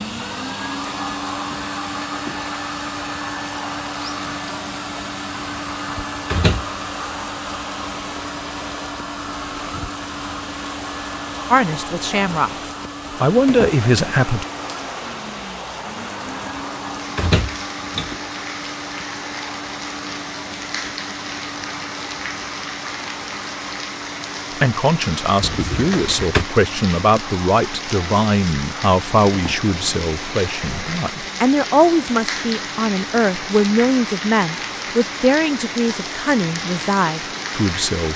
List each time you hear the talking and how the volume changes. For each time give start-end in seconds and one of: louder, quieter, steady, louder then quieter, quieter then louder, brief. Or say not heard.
11.5-14.4 brief
24.6-38.1 steady.